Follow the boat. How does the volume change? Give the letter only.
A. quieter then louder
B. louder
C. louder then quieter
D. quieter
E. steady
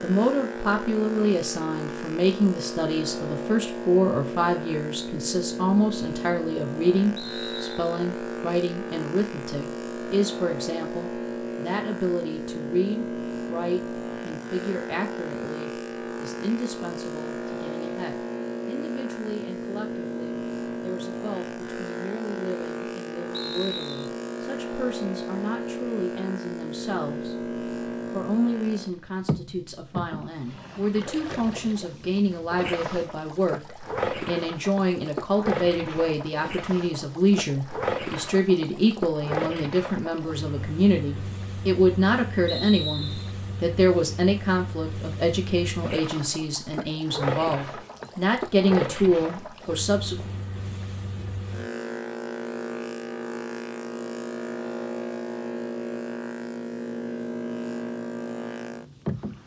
E.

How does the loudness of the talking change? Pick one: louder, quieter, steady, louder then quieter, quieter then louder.
quieter then louder.